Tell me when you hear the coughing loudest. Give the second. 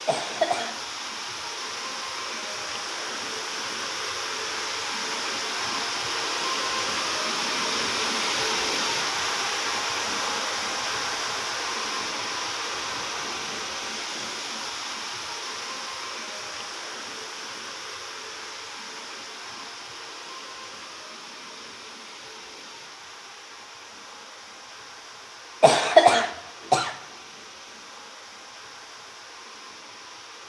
26 s.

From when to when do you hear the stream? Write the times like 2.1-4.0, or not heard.
0.0-30.4.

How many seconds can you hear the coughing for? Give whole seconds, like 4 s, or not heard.
2 s.